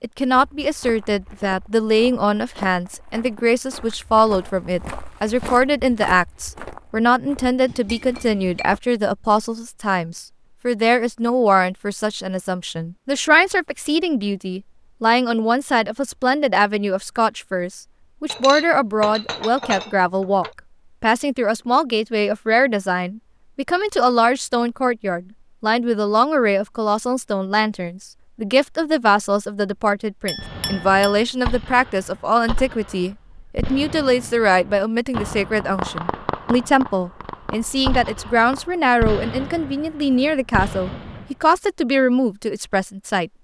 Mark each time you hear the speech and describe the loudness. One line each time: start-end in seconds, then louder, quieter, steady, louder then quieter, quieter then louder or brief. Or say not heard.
0.0-43.3 steady.